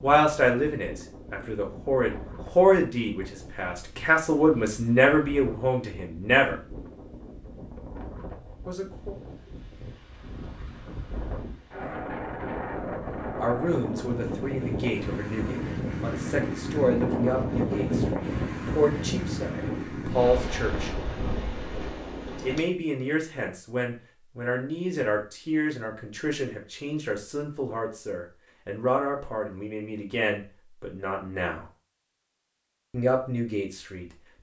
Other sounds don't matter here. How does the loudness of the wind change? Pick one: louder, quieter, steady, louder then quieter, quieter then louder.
louder.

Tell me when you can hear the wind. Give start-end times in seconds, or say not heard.
0.0-22.6.